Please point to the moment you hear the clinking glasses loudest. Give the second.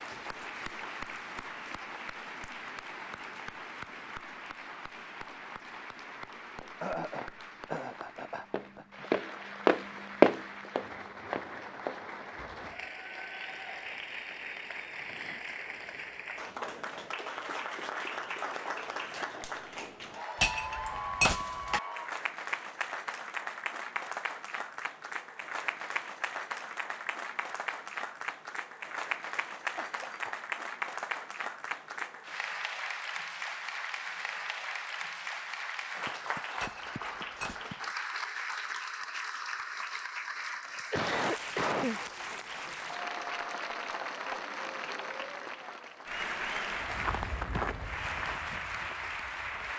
21 s.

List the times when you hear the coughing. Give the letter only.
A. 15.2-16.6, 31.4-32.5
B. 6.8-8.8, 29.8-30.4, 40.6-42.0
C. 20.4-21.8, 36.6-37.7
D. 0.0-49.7
B.